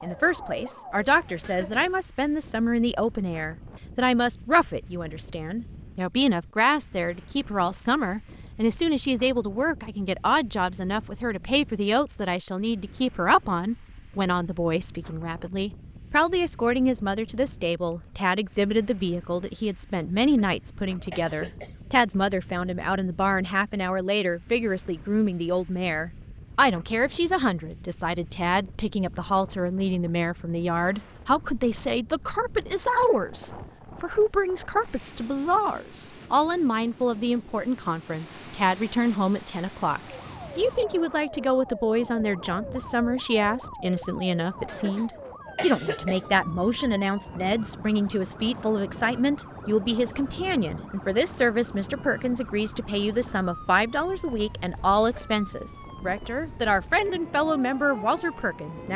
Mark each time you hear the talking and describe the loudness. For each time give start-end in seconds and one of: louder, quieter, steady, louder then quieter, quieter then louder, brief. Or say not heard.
0.0-58.9 steady.